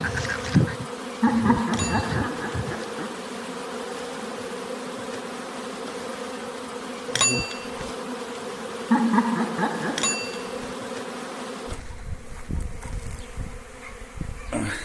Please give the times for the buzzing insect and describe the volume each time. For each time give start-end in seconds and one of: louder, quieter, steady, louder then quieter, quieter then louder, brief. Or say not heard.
0.0-14.8 quieter.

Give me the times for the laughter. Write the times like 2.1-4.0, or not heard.
1.2-3.1, 8.9-10.2.